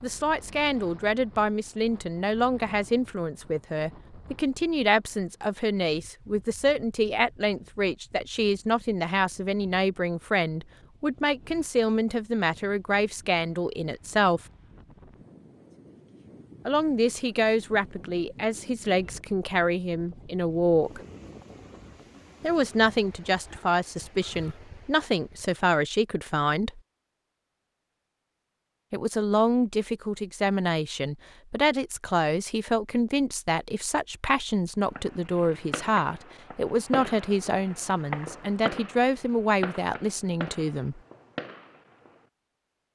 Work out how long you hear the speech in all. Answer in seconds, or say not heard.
35 s.